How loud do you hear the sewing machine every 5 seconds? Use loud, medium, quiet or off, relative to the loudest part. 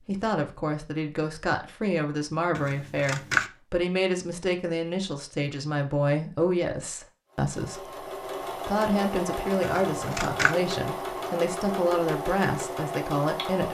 off, loud, loud.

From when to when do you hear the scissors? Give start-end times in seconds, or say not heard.
2.5-3.5, 9.6-10.6.